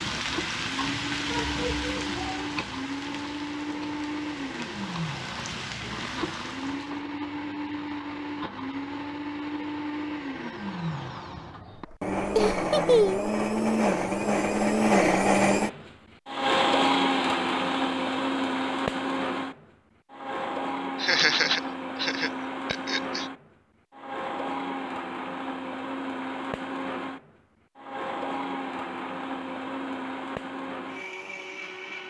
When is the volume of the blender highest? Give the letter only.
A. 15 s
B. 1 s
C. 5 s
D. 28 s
A.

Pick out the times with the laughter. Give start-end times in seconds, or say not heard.
12.3-13.3, 21.0-23.2.